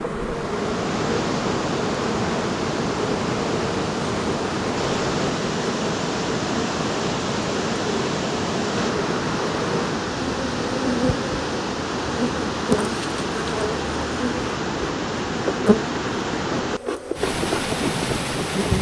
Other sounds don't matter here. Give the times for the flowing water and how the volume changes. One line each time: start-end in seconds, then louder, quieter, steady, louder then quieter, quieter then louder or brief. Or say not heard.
0.2-18.7 steady.